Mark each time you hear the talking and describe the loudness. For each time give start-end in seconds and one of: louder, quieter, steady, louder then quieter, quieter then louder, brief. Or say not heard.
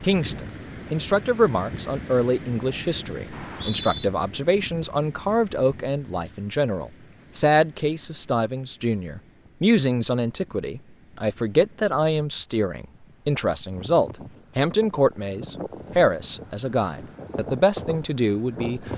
0.0-18.9 steady.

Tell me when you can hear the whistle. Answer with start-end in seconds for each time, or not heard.
3.3-4.0.